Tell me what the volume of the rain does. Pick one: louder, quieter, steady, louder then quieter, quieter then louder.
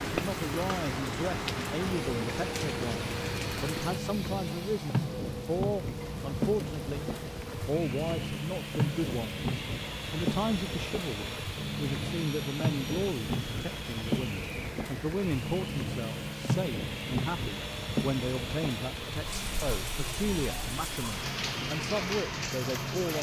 steady.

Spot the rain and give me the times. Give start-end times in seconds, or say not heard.
0.0-23.1.